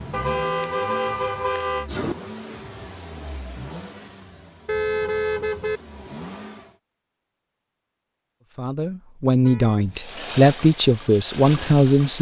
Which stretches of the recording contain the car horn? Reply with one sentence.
You can hear the car horn from 0.1 to 2.1 s, from 4.7 to 5.8 s and from 9.4 to 9.9 s.